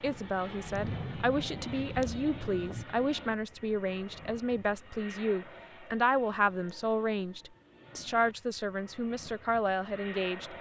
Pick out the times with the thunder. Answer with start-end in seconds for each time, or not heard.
0.0-2.9.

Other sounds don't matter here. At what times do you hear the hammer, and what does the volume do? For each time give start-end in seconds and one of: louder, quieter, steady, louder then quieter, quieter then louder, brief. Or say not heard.
not heard.